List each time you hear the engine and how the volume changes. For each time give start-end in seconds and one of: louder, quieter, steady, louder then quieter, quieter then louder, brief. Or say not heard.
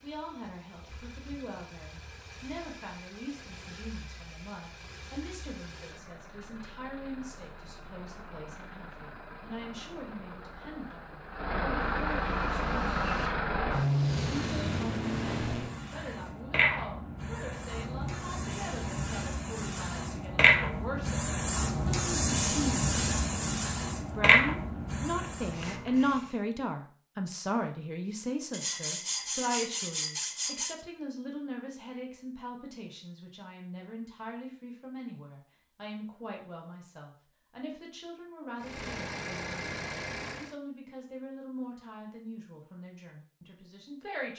0.0-15.8 louder
38.5-40.5 brief.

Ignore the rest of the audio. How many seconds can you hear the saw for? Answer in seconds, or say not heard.
2 s.